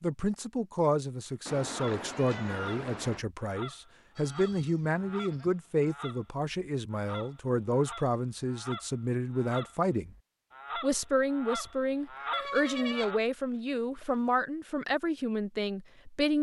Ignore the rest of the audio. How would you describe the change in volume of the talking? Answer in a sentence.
The volume of the talking stays about the same.